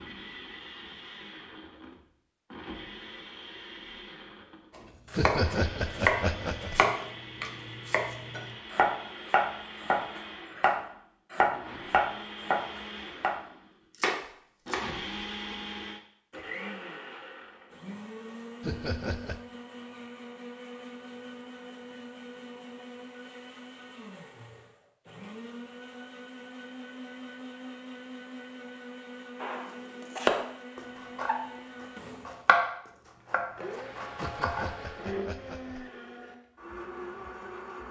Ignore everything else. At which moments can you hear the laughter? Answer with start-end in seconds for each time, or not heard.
5.2-6.8, 18.6-19.4, 34.1-35.9.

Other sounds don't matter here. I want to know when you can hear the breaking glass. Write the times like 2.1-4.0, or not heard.
not heard.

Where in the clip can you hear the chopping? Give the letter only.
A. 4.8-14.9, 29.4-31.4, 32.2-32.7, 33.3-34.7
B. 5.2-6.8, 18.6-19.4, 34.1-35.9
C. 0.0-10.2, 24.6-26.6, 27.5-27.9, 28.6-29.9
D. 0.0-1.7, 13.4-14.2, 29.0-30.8
A.